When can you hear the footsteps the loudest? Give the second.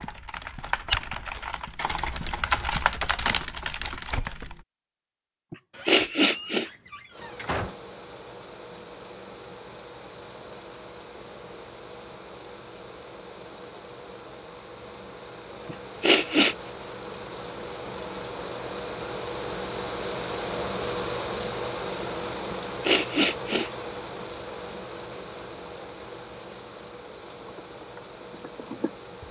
1 s.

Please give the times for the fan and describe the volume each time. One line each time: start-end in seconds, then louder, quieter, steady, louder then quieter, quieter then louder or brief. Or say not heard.
7.1-29.2 louder then quieter.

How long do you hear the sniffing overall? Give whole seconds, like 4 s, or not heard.
3 s.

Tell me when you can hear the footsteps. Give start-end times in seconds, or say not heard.
0.0-4.7.